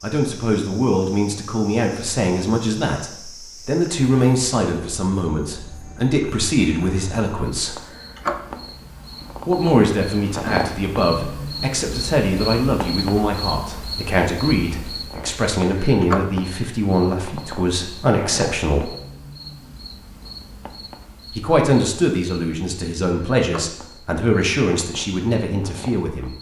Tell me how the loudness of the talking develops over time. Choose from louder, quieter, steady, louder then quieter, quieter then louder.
steady.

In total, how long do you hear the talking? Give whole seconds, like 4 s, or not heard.
22 s.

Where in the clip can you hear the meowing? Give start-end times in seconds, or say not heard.
not heard.